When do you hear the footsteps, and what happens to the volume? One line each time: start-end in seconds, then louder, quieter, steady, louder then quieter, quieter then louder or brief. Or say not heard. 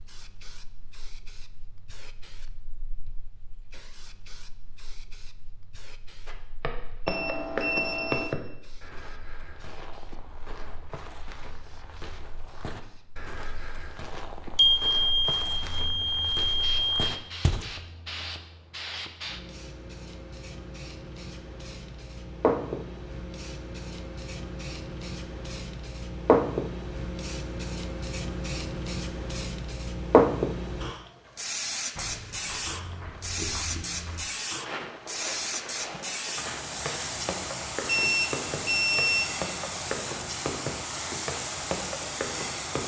6.2-17.8 quieter then louder
31.9-42.8 louder.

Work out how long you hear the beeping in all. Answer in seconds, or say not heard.
5 s.